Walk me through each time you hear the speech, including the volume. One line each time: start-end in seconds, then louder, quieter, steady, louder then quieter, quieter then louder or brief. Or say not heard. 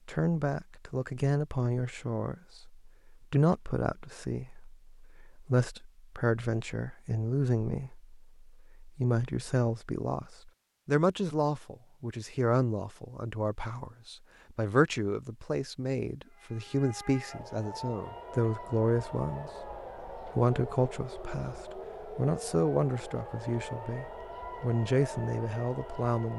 0.1-26.3 steady.